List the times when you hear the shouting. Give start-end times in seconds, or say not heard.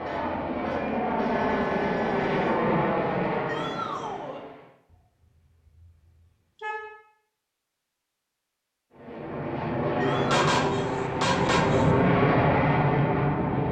3.5-4.5, 9.9-10.4.